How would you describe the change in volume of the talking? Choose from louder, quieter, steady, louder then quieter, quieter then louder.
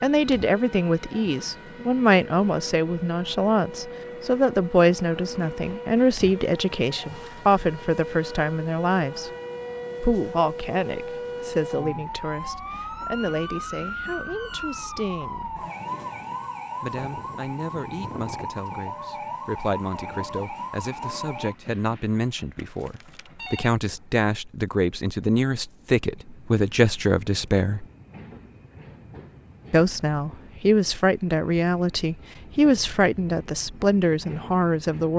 quieter then louder.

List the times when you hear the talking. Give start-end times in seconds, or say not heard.
0.0-9.3, 10.0-15.7, 16.8-27.9, 29.7-35.1.